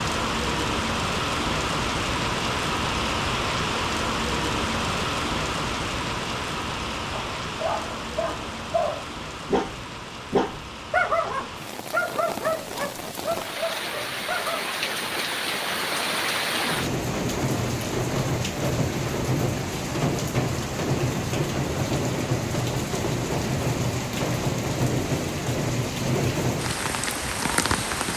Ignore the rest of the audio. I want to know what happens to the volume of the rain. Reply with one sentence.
The loudness of the rain goes down, then up.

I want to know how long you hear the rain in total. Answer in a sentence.
You can hear the rain for 28 seconds altogether.